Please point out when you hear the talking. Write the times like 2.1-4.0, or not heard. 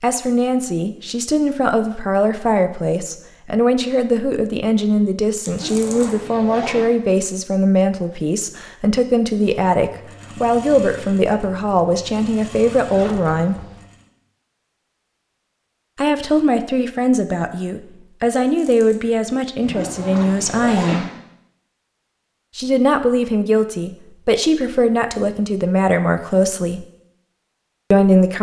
0.0-13.6, 15.9-21.1, 22.6-26.9, 27.9-28.3.